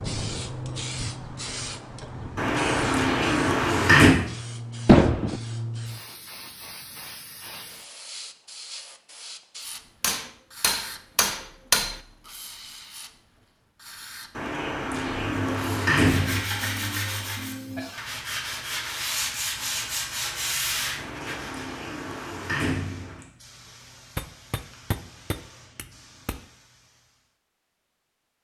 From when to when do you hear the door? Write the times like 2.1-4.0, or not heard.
2.4-4.2, 14.3-16.4, 20.9-23.2.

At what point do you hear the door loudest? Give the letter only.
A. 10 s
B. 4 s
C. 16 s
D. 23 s
B.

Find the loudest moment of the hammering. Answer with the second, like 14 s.
5 s.